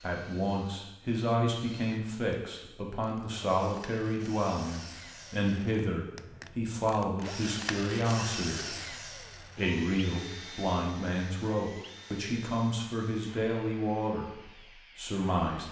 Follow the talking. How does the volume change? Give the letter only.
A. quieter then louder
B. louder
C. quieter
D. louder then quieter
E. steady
E.